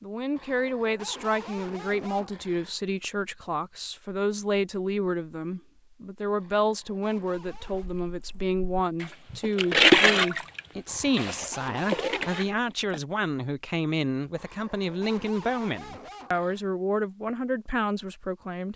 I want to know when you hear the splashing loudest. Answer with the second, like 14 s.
10 s.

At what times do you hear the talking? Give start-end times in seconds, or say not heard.
0.0-18.7.